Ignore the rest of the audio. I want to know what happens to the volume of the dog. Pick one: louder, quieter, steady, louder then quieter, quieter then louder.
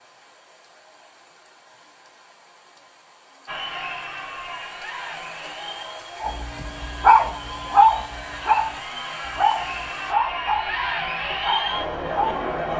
quieter.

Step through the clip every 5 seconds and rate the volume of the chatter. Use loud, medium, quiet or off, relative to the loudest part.
medium, medium, loud.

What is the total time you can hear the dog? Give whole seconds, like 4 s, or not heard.
6 s.